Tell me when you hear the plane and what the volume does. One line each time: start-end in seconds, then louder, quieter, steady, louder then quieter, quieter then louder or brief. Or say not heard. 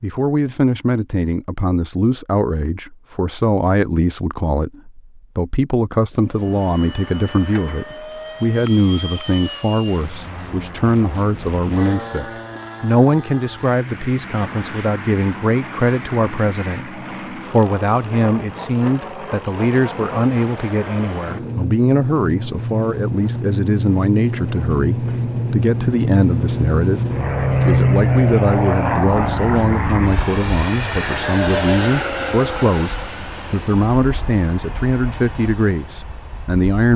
6.1-36.9 louder then quieter.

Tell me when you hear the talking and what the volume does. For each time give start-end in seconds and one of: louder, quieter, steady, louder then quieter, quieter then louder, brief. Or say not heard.
0.0-36.9 steady.